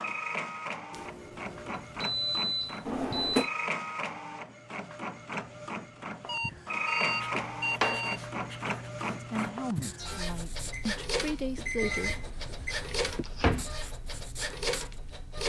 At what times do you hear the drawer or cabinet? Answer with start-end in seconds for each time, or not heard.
2.9-3.5, 7.3-8.1, 12.0-13.8.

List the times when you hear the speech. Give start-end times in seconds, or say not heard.
9.2-12.3.